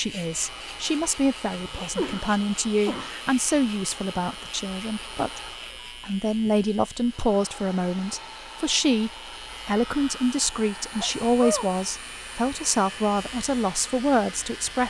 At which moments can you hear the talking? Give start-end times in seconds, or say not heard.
0.0-5.4, 6.0-14.8.